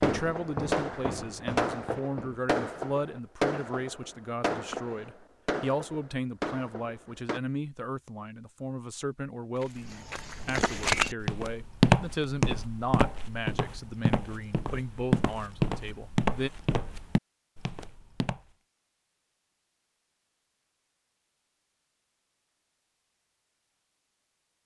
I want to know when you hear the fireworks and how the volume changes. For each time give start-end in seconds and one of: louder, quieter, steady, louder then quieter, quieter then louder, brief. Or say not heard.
0.0-7.4 quieter.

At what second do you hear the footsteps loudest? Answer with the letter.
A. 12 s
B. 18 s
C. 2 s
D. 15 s
A.